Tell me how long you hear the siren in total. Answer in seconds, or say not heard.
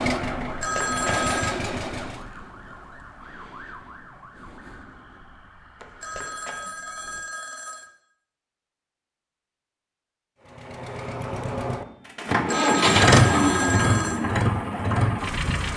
7 s.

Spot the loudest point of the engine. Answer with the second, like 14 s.
13 s.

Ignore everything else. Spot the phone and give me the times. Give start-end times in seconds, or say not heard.
0.4-1.6, 5.8-7.9, 12.3-14.2.